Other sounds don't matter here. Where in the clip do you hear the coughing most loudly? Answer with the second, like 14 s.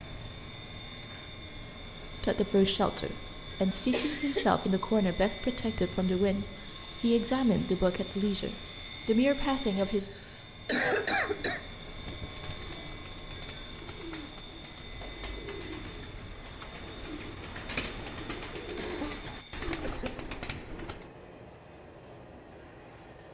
11 s.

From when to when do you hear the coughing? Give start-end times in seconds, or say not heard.
3.9-4.7, 10.1-11.6, 18.8-20.1.